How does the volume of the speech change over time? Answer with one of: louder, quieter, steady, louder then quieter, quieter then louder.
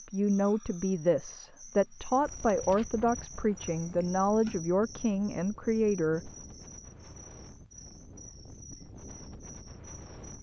steady.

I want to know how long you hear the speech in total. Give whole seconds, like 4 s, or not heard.
6 s.